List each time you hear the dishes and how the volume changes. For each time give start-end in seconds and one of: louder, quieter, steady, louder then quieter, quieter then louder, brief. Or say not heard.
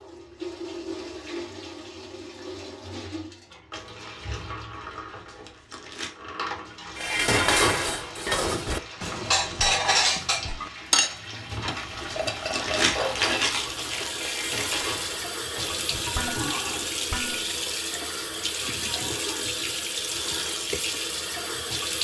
7.0-17.6 quieter.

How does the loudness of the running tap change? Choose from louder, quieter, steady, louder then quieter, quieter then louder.
louder.